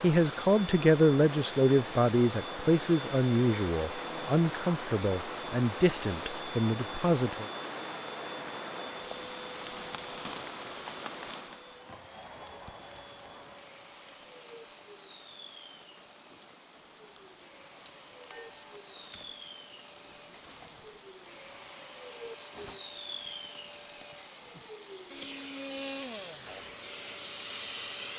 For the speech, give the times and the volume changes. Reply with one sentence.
You can hear the speech from 0.0 to 7.5 s, getting quieter.